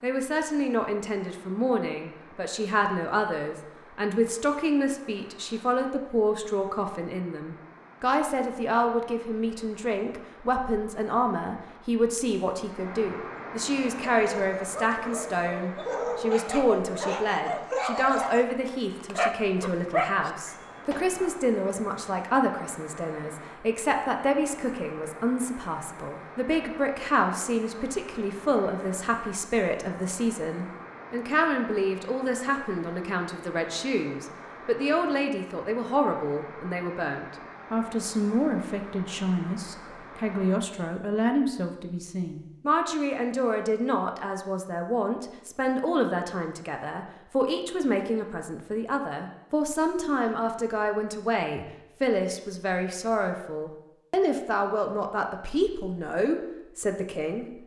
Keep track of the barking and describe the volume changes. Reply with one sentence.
The loudness of the barking goes up.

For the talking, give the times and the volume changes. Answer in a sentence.
The talking can be heard from 0.0 to 57.5 s, at a steady volume.